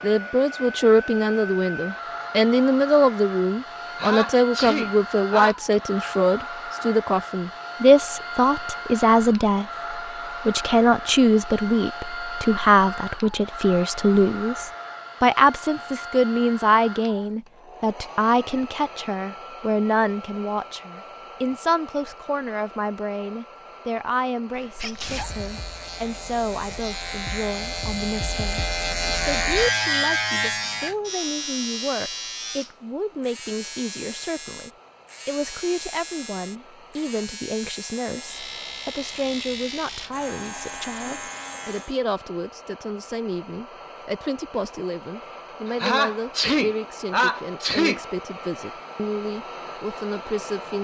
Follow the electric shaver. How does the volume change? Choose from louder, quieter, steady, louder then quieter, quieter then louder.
louder then quieter.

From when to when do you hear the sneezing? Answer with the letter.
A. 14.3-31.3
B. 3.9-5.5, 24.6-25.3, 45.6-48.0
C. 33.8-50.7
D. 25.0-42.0
B.